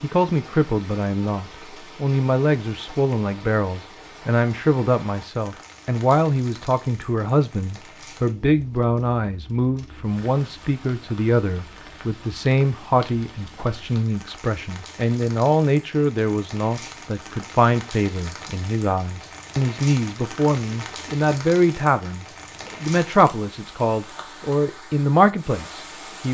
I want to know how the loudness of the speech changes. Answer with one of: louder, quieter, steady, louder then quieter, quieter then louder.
steady.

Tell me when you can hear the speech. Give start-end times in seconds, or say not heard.
0.0-26.2.